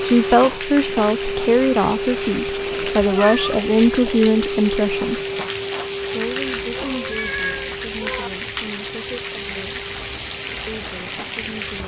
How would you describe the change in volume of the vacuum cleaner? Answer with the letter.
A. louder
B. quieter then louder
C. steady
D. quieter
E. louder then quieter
D.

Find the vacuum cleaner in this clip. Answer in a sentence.
You can hear the vacuum cleaner from 0.0 to 11.8 s.